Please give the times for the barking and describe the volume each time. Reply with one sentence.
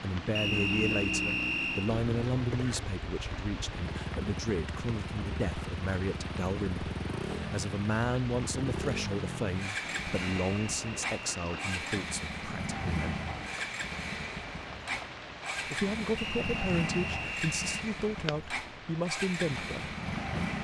You can't hear the barking here.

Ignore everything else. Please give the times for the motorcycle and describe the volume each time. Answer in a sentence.
The motorcycle can be heard from 0.0 to 20.5 s, at a steady volume.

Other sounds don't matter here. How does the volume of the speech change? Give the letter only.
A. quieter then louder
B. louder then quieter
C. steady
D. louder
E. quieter
C.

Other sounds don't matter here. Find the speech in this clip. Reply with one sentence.
The speech can be heard from 0.0 to 13.2 s and from 15.7 to 19.9 s.